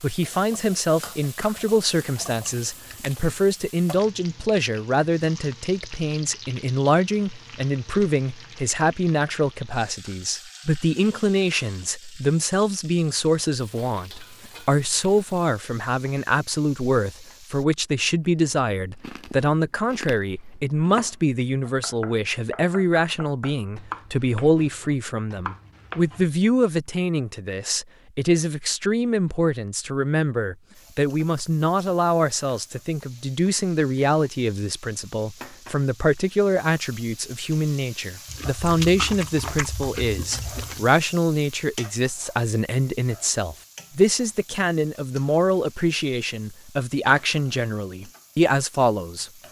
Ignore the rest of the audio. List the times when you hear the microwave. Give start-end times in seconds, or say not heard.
not heard.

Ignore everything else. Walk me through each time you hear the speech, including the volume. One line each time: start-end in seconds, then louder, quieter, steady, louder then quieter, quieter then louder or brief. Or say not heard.
0.0-49.3 steady.